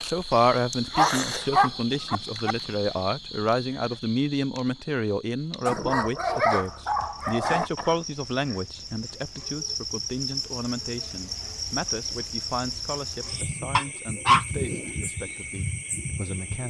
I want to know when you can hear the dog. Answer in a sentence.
The dog can be heard from 0.9 to 2.5 s, from 5.7 to 7.7 s and from 13.8 to 14.4 s.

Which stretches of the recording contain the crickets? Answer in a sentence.
The crickets can be heard from 0.0 to 16.6 s.